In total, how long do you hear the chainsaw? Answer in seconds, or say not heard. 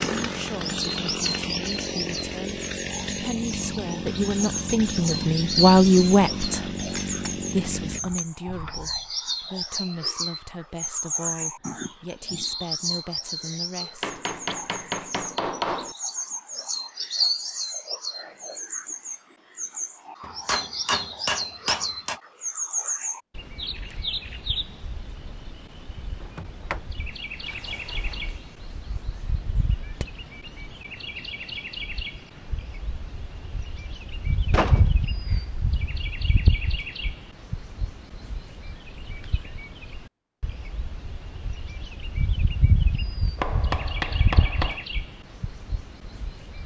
8 s.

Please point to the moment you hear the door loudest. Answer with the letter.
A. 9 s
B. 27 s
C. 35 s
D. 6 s
C.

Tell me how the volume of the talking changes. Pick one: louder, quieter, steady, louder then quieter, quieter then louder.
louder then quieter.